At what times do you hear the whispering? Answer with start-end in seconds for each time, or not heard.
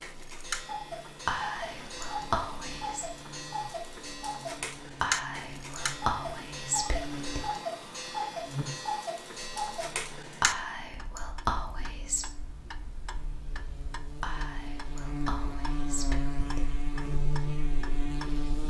1.2-3.0, 5.0-7.5, 10.4-12.2, 14.2-16.8.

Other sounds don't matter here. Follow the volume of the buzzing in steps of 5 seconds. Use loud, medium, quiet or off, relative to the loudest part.
quiet, medium, quiet, loud.